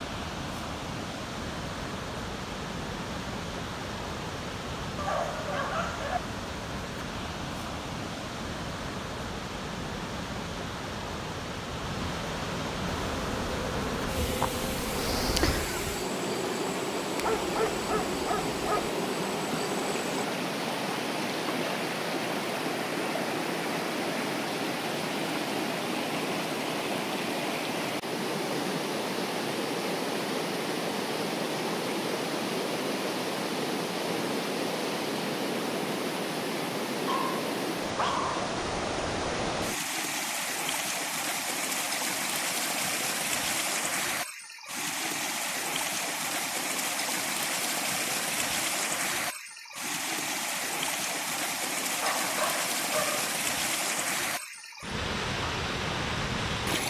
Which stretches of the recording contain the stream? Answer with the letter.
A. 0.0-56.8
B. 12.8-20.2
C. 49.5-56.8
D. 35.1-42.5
A.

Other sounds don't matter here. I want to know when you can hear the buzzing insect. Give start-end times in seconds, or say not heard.
12.8-20.2.